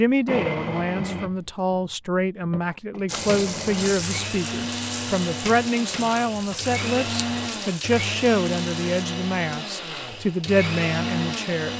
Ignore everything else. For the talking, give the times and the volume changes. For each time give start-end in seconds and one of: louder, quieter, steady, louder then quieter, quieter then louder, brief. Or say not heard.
0.0-11.7 steady.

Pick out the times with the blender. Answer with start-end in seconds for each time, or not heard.
0.0-11.7.